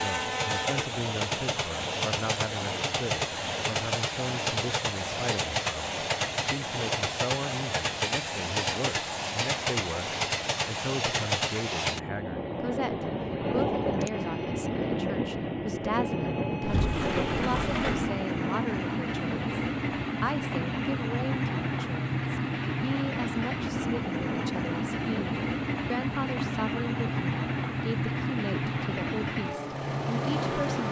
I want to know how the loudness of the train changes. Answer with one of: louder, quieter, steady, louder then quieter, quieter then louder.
steady.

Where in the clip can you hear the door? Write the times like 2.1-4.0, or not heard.
16.6-18.1.